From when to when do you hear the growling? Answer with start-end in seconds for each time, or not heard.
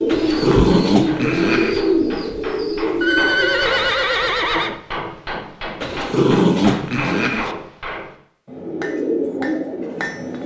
0.1-1.8, 5.8-7.5.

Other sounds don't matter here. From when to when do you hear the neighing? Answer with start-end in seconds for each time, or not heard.
3.0-4.8.